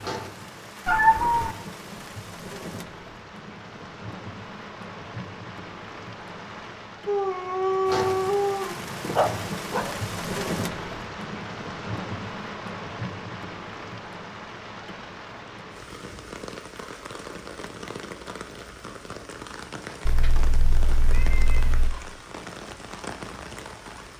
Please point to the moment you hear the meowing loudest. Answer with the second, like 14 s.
1 s.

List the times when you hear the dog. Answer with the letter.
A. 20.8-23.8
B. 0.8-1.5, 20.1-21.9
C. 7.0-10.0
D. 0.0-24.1
C.